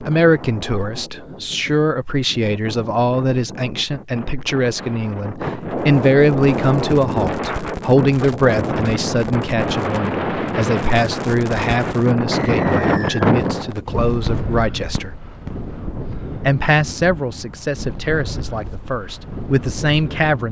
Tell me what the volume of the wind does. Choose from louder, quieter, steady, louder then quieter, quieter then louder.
louder then quieter.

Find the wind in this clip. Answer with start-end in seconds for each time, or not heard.
0.0-20.4.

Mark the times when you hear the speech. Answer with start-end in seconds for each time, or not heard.
0.0-15.2, 16.4-20.4.